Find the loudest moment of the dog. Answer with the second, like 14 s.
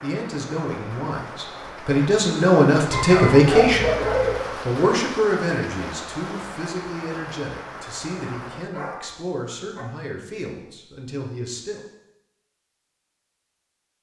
4 s.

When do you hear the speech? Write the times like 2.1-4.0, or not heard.
0.0-4.0, 4.7-11.8.